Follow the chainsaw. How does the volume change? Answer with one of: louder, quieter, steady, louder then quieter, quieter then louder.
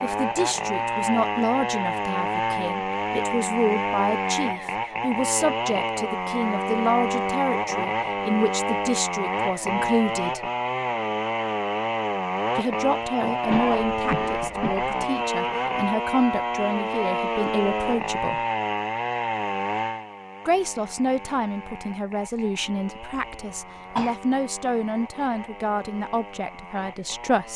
quieter.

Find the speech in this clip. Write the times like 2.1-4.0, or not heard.
0.0-10.4, 12.6-18.4, 20.4-27.5.